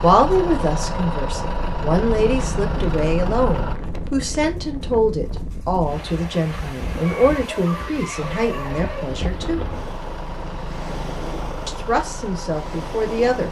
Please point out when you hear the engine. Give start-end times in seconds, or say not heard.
0.0-3.8, 8.2-13.4.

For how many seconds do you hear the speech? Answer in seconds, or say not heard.
11 s.